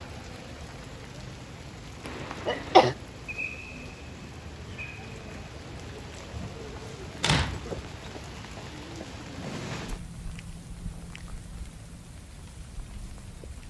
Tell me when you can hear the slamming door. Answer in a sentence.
You can hear the slamming door from 6.8 to 8.1 s.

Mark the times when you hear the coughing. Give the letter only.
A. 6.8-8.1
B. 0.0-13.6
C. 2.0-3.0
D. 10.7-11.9
C.